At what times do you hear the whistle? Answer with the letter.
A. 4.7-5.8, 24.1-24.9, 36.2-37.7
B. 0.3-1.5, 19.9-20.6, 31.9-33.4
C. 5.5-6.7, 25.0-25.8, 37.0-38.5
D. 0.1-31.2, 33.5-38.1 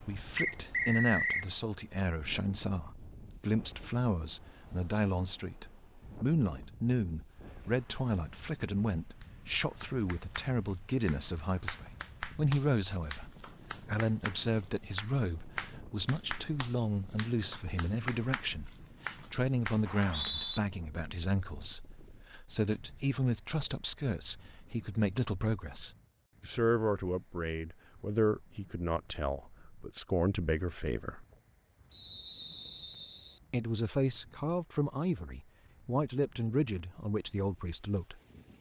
B.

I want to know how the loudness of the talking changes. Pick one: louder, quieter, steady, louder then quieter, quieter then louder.
steady.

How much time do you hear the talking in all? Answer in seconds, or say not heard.
36 s.